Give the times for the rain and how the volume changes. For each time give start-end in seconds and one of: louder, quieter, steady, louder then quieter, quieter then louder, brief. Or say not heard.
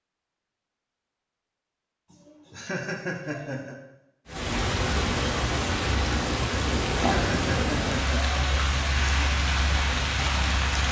4.2-10.8 steady.